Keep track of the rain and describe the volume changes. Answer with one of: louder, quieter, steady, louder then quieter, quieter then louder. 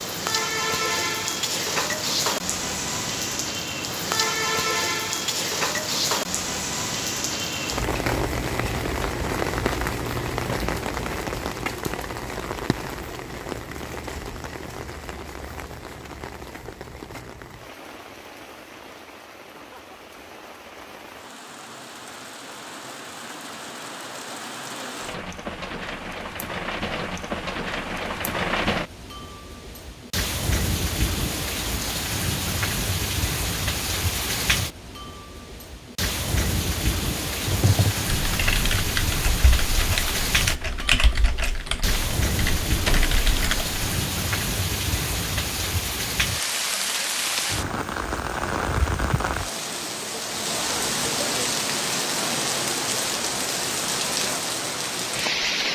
quieter then louder.